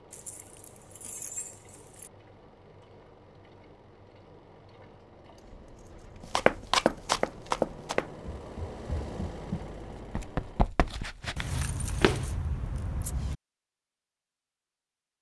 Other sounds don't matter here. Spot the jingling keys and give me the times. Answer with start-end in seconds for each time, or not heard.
0.1-2.1, 5.3-7.7, 11.3-13.3.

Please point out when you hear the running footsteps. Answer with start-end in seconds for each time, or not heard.
6.2-12.2.